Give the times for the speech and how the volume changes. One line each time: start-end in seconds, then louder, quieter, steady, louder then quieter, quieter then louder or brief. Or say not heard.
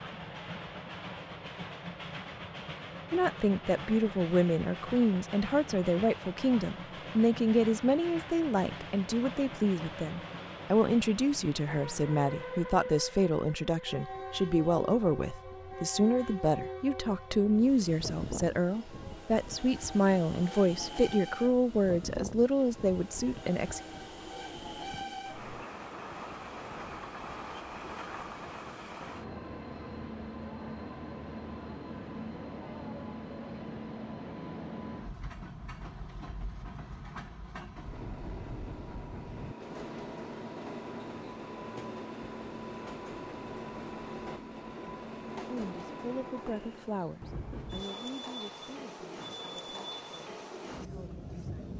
3.1-23.8 steady
45.5-51.7 quieter then louder.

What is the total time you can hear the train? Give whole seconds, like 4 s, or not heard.
52 s.